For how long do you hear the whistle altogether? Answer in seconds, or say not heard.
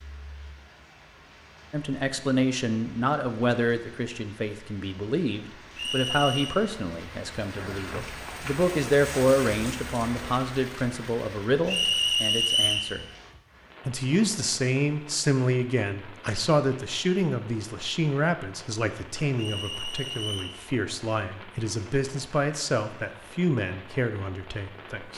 3 s.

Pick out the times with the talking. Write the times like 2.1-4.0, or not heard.
1.7-13.1, 13.8-25.1.